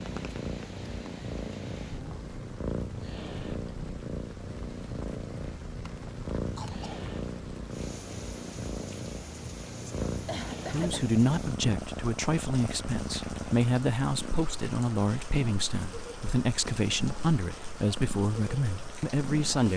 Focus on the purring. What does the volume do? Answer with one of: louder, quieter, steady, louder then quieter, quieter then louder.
quieter.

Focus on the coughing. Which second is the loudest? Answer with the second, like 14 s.
11 s.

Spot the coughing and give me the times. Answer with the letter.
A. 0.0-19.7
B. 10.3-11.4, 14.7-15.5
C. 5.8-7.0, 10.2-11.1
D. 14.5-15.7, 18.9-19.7
C.